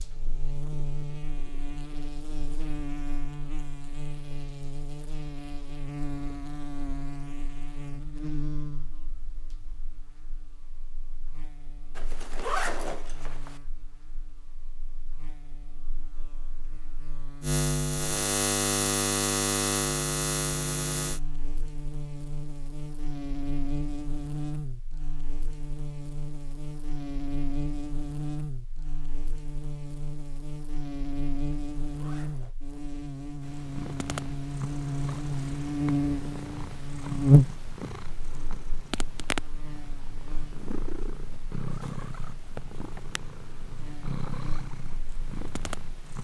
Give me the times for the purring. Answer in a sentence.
The purring can be heard from 33.4 to 46.2 s.